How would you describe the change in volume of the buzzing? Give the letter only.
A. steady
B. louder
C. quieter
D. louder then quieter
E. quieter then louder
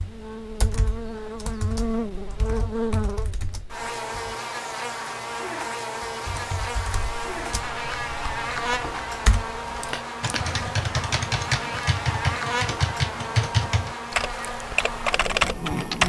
A.